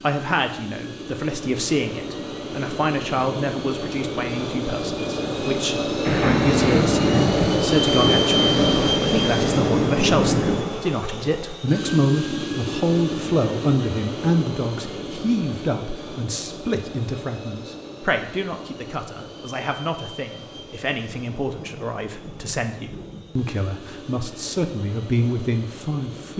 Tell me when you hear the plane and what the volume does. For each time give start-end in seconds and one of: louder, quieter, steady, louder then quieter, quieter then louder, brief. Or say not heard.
0.0-26.3 louder then quieter.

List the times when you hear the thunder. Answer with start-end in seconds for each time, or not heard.
6.0-10.8, 20.5-23.6.